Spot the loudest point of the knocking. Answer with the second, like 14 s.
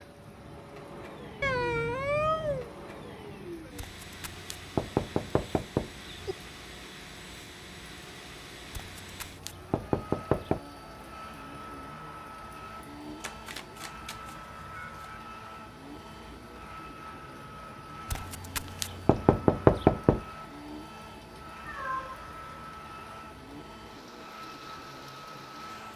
20 s.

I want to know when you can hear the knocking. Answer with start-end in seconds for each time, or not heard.
3.8-6.3, 8.8-10.6, 18.1-20.2.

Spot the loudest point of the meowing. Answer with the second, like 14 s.
2 s.